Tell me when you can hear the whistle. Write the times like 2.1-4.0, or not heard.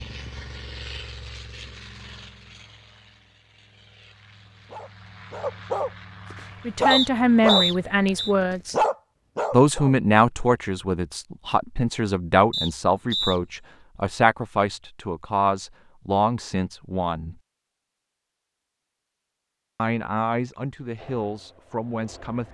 6.9-8.3, 12.5-13.4.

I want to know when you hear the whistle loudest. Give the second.
8 s.